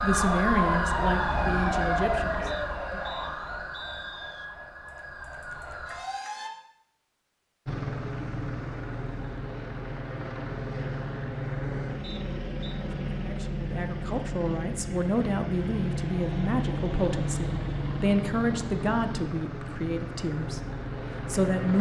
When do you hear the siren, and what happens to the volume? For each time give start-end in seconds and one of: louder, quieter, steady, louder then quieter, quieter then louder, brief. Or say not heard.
0.0-6.5 quieter.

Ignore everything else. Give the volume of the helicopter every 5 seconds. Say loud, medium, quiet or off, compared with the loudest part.
off, loud, loud, loud, loud.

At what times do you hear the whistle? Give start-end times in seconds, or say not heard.
2.5-4.5, 12.0-12.8.